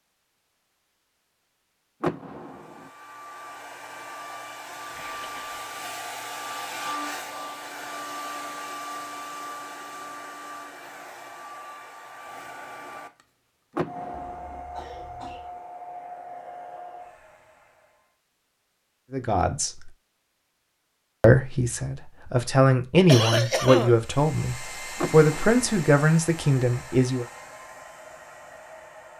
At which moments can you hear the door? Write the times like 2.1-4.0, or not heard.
2.0-2.9, 13.8-14.6, 24.9-25.6.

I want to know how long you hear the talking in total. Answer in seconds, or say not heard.
7 s.